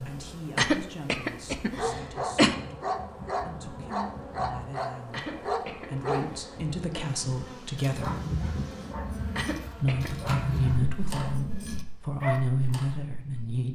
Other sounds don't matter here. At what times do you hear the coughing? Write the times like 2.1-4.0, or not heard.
0.6-2.5, 5.1-7.0, 9.3-10.1.